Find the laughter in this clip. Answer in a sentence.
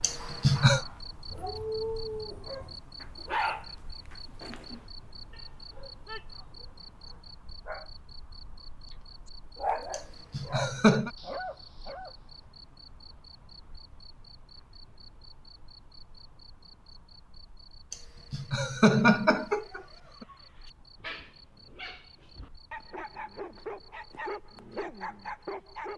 You can hear the laughter from 0.0 to 0.8 s, from 9.9 to 11.1 s and from 17.9 to 20.2 s.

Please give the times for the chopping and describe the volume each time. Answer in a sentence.
The chopping can't be heard in this clip.